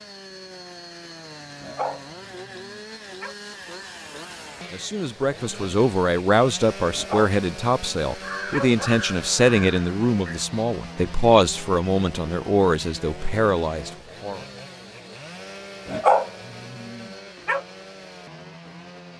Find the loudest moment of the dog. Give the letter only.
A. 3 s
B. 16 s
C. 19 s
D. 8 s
B.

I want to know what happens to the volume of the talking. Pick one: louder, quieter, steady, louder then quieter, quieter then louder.
steady.